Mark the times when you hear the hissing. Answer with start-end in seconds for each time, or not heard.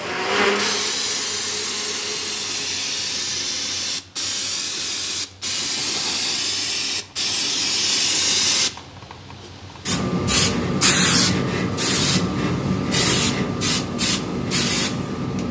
0.0-15.4.